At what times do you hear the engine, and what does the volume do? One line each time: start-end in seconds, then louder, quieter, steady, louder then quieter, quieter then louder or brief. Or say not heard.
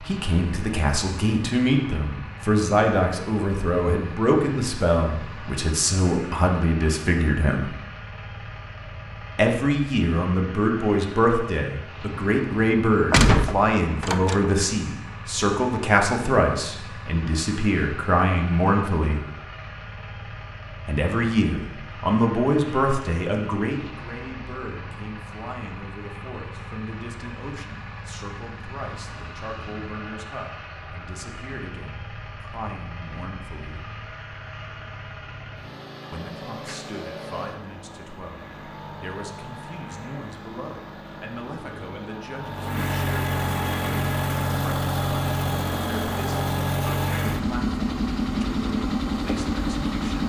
0.0-50.2 louder.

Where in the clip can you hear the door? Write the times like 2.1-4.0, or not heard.
13.1-14.4.